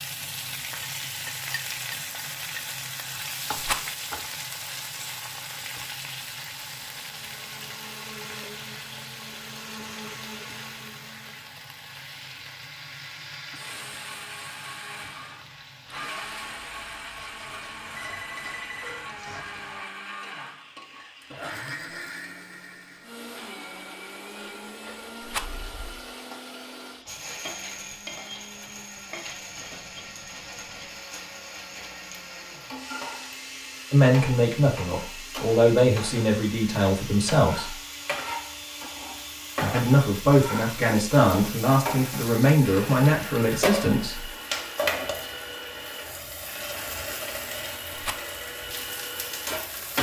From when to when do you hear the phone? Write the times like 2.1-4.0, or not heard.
18.0-19.1, 25.4-26.1.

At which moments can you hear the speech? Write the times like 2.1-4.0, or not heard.
33.9-37.8, 39.6-44.3.